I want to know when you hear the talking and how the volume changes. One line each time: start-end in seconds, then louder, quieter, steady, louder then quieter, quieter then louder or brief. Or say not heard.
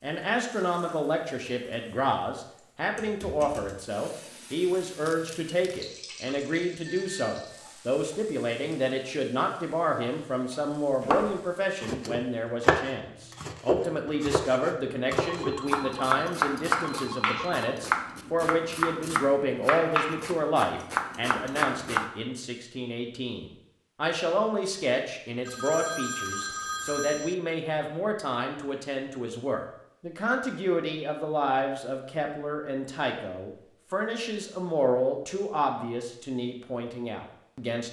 0.0-37.8 steady.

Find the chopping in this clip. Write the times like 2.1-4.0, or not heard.
11.0-22.1.